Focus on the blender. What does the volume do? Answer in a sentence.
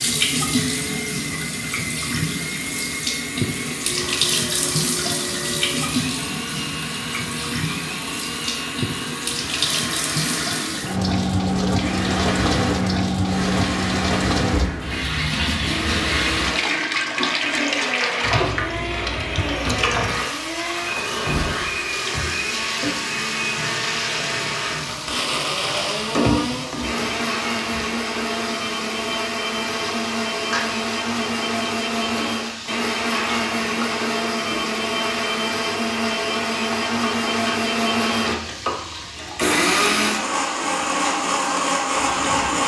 The loudness of the blender goes up.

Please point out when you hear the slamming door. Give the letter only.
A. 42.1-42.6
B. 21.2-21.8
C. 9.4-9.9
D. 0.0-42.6
B.